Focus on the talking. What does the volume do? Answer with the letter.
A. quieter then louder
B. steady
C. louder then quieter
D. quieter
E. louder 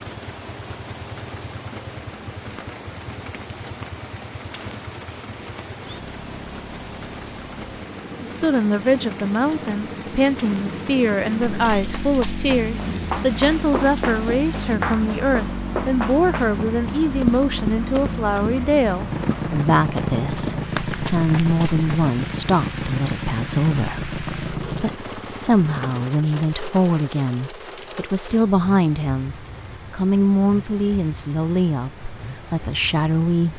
B.